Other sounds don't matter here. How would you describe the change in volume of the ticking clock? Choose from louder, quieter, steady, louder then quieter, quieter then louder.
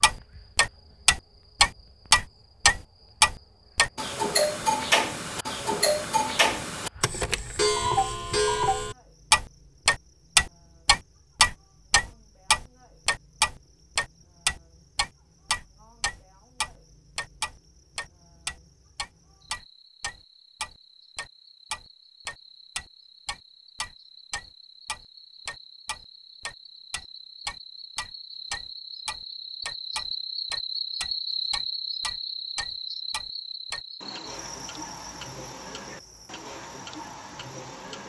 quieter.